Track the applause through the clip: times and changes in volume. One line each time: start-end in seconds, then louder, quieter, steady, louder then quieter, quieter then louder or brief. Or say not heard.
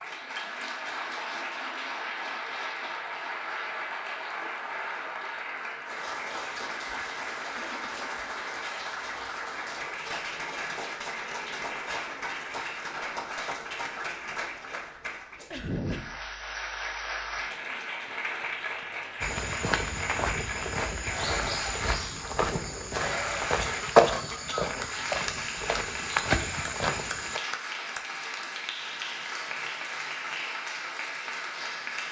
0.0-32.0 steady.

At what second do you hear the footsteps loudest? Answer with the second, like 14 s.
24 s.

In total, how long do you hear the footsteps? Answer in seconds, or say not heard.
8 s.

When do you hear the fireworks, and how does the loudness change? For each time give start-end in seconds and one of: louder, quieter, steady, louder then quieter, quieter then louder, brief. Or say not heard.
not heard.